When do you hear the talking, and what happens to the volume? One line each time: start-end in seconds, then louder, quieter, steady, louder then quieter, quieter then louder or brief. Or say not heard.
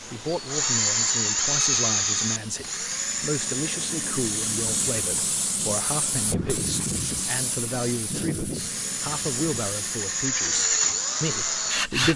0.1-12.1 steady.